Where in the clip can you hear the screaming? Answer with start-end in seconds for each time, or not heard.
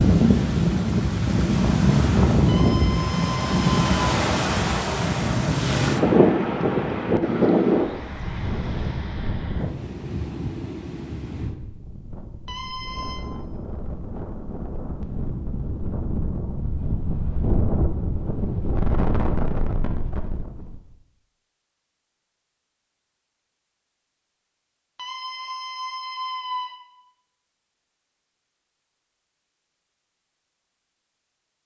2.5-4.0, 12.4-13.2, 24.9-26.8.